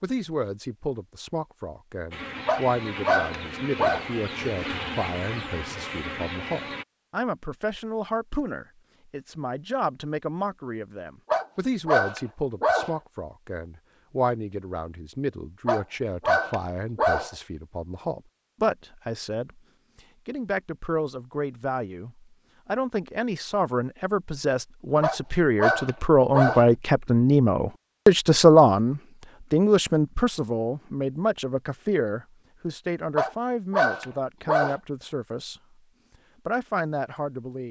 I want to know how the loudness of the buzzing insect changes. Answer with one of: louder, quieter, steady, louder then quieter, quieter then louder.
steady.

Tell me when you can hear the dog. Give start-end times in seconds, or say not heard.
2.5-4.0, 11.3-12.9, 15.7-17.3, 25.0-26.6, 33.1-34.8.